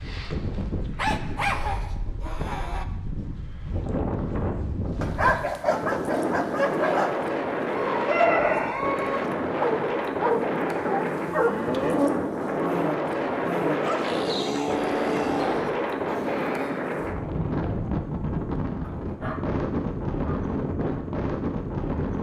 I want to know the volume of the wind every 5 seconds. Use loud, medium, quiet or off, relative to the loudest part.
medium, loud, loud, loud, loud.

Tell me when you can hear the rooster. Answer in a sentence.
You can hear the rooster from 7.7 to 9.2 s.